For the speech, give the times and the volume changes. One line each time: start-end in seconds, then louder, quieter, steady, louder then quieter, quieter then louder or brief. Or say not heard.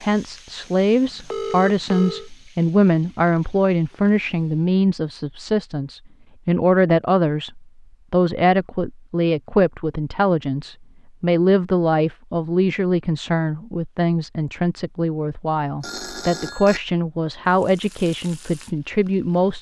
0.0-19.5 steady.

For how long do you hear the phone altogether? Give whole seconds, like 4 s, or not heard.
2 s.